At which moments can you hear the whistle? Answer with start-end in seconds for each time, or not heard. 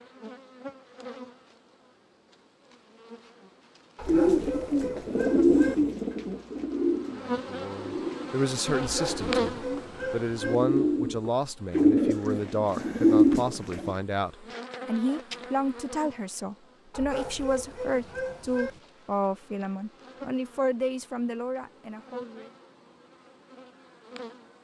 not heard.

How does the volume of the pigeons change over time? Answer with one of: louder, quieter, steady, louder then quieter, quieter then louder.
quieter then louder.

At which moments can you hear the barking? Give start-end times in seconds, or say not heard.
4.0-5.8, 8.8-10.7, 16.9-18.8.